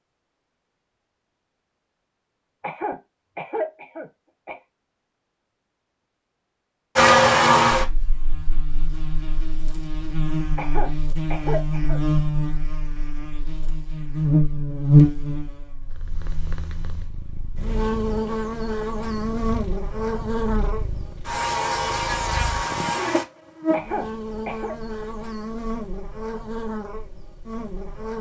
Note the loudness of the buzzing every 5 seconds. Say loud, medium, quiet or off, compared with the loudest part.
off, loud, loud, medium, medium, quiet.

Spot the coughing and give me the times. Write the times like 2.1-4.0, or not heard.
2.6-4.6, 10.6-12.0, 23.7-24.8.